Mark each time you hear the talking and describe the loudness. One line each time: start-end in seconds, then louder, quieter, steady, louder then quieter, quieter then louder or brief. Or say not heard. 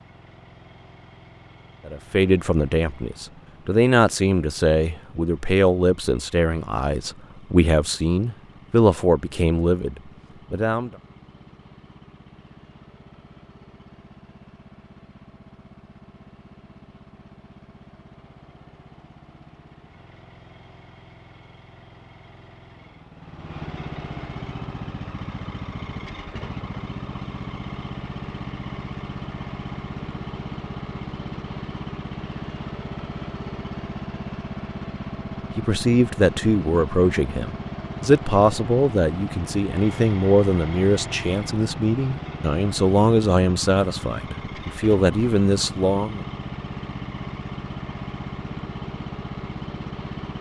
1.9-10.9 steady
35.5-46.2 steady.